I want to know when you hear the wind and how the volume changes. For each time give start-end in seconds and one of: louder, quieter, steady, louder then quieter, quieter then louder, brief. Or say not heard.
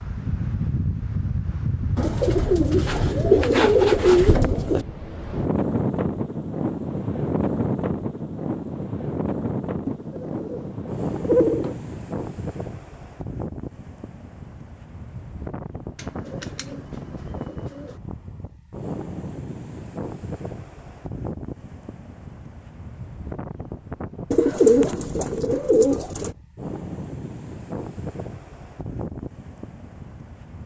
0.0-30.6 quieter.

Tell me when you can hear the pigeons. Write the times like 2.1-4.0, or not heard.
1.9-4.8, 9.8-11.8, 15.9-17.9, 24.3-26.3.